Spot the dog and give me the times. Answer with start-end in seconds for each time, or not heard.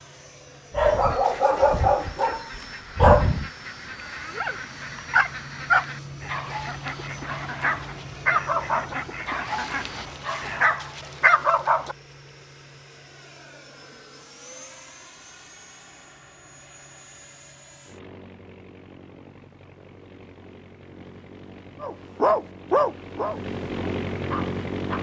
0.8-11.9, 21.8-23.4, 24.3-24.9.